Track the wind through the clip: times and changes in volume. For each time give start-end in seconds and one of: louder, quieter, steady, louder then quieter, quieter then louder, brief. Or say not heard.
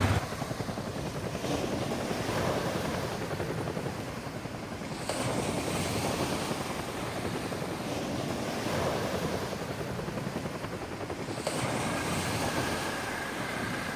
0.0-13.9 steady.